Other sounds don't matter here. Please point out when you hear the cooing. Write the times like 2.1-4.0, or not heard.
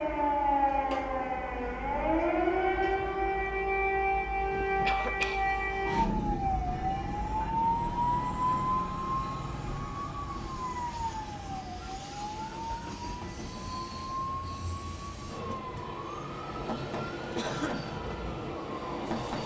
not heard.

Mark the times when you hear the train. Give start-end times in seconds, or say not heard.
0.0-19.4.